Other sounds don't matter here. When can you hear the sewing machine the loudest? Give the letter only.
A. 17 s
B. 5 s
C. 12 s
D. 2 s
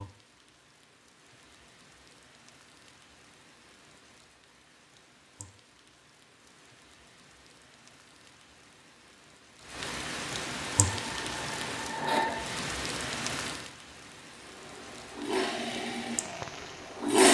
A.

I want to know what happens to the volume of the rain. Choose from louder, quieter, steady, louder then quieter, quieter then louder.
louder then quieter.